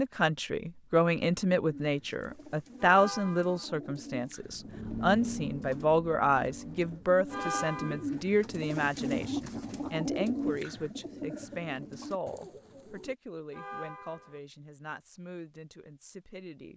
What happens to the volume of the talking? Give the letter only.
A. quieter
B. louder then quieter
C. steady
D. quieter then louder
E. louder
A.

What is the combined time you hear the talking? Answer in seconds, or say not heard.
17 s.